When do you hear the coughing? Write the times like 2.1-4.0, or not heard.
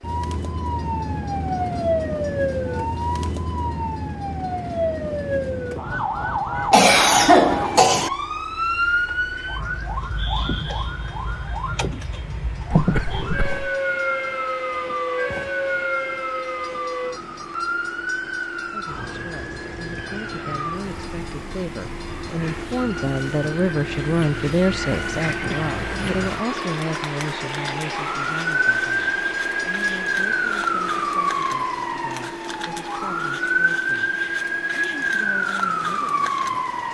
6.7-8.1, 12.7-13.7, 25.5-26.1.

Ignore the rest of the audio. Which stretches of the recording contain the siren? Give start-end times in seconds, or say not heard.
0.0-36.8.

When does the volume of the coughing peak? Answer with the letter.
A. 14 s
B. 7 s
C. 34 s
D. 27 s
B.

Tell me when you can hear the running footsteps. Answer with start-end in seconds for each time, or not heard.
not heard.